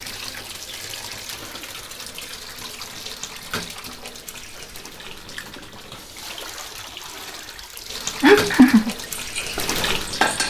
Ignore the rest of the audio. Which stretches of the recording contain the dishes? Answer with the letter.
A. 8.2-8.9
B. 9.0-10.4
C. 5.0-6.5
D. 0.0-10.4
B.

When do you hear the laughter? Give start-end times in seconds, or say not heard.
8.2-8.9.